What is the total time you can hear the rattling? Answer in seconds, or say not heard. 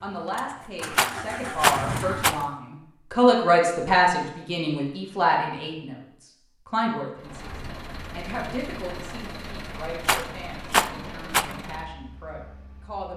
3 s.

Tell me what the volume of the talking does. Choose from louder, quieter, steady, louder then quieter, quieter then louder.
louder then quieter.